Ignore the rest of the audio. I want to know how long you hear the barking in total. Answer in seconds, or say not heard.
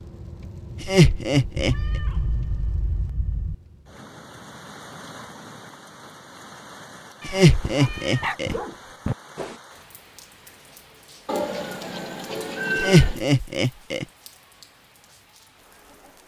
2 s.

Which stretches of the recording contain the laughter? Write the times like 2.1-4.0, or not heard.
0.8-1.8, 7.2-8.6, 12.8-14.1.